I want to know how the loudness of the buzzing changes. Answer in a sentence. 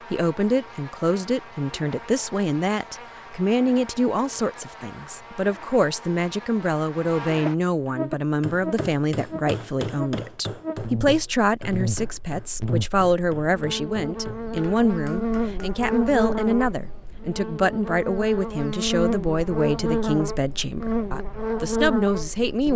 The loudness of the buzzing goes up.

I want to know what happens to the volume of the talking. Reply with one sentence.
The volume of the talking stays about the same.